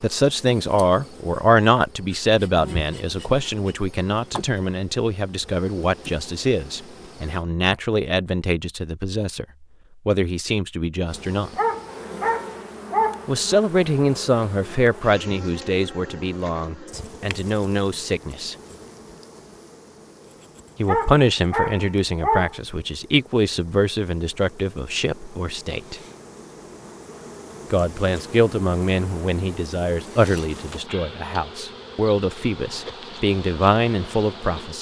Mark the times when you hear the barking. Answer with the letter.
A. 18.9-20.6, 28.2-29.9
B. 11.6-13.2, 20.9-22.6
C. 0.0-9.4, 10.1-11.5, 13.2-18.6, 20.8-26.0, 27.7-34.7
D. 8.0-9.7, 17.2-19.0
B.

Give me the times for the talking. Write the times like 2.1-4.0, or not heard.
0.0-9.4, 10.1-11.5, 13.2-18.6, 20.8-26.0, 27.7-34.7.